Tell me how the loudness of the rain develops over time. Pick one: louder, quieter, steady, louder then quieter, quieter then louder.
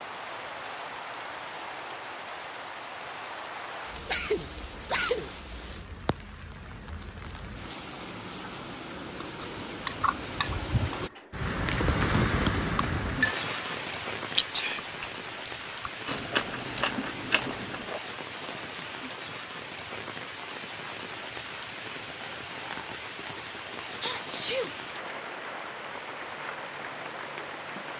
louder then quieter.